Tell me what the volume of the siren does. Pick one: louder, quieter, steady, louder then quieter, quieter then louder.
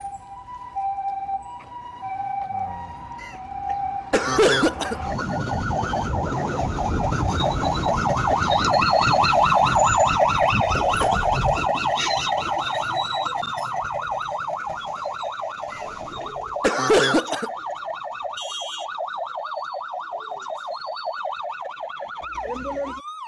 louder then quieter.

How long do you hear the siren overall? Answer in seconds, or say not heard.
23 s.